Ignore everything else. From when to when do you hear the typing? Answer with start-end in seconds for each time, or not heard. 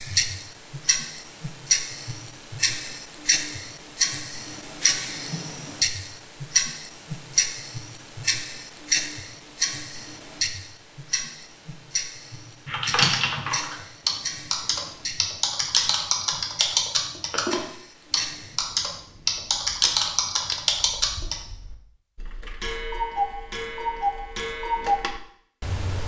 12.7-21.4.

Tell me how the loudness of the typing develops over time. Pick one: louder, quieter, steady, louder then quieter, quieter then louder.
steady.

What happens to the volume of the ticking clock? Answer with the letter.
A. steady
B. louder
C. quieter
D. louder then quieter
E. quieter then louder
E.